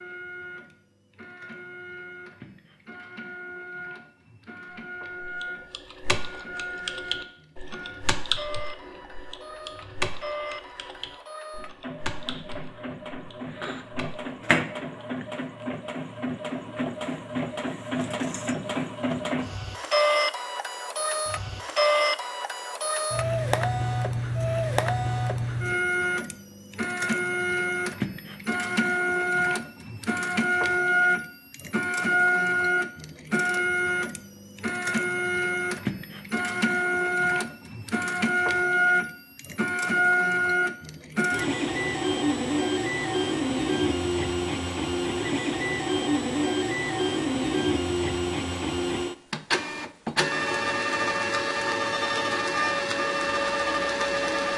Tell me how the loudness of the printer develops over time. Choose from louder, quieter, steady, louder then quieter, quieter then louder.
louder.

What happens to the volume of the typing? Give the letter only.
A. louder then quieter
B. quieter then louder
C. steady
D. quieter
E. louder
D.